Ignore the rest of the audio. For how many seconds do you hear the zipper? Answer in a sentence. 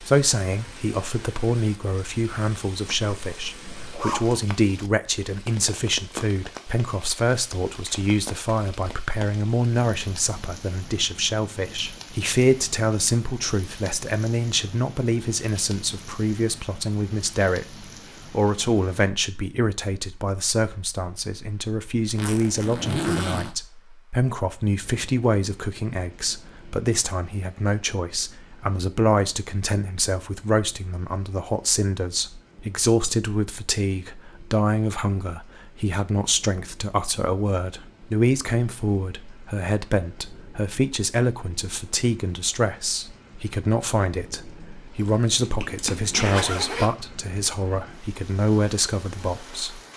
The zipper can be heard for 5 seconds in total.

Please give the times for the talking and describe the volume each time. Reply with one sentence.
The talking can be heard from 0.0 to 49.8 s, at a steady volume.